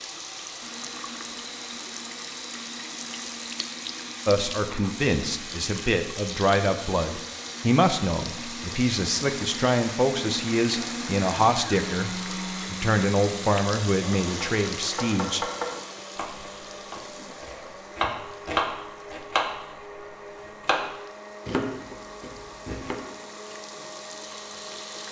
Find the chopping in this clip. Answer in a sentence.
The chopping can be heard from 14.2 to 20.1 s and from 20.6 to 23.0 s.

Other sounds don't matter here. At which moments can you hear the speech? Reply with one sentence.
The speech can be heard from 4.2 to 15.4 s.